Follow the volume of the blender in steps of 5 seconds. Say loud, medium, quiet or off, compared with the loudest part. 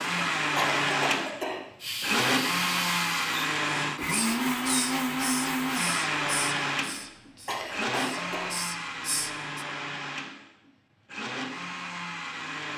loud, loud, medium.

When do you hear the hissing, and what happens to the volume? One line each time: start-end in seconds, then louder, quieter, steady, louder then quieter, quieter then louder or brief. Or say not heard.
1.8-9.7 quieter then louder.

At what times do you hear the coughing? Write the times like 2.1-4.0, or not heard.
0.6-1.6, 7.5-8.5.